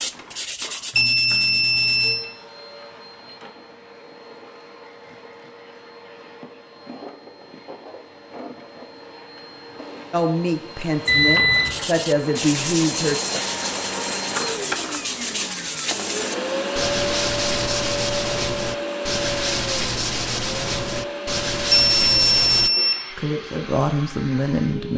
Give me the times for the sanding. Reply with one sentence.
You can hear the sanding from 0.0 to 2.1 s and from 11.7 to 22.7 s.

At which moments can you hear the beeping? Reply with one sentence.
You can hear the beeping from 0.9 to 2.2 s, from 11.1 to 11.8 s and from 21.7 to 23.0 s.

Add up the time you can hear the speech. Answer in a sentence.
You can hear the speech for 5 seconds altogether.